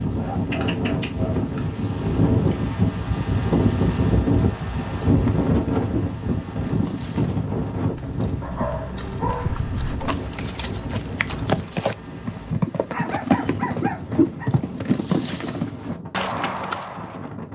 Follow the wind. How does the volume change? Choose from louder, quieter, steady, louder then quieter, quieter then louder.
quieter.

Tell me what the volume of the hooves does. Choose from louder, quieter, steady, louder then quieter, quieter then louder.
louder.